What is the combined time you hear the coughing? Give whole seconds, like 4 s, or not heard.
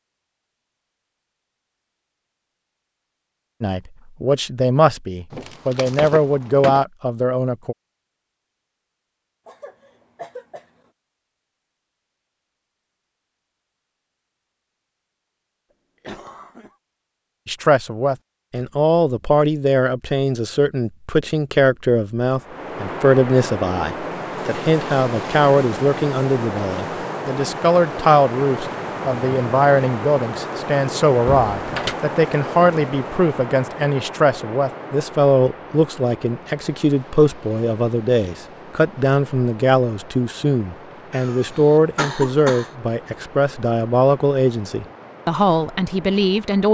4 s.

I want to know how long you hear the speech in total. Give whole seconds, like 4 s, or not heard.
33 s.